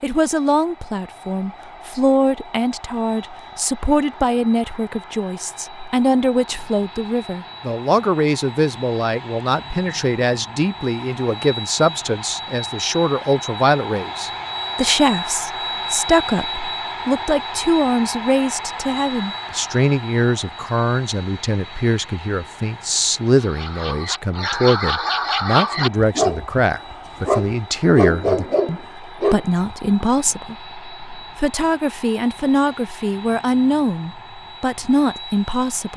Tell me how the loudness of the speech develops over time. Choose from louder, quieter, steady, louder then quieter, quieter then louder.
steady.